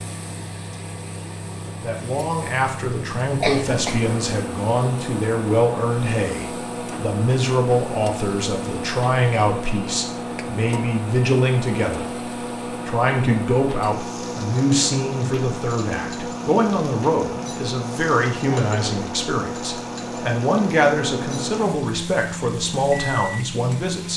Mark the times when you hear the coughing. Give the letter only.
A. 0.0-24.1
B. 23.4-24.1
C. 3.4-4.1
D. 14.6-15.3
C.